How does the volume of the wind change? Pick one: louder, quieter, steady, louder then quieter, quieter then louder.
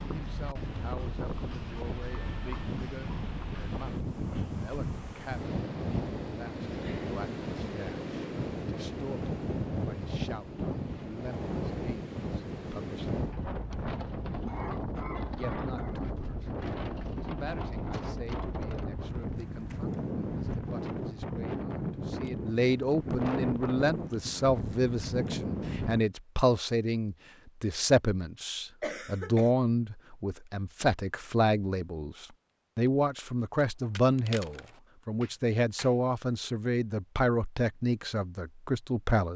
steady.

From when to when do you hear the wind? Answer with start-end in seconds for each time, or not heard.
0.0-26.0.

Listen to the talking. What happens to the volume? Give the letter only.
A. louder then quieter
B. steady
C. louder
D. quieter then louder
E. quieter
C.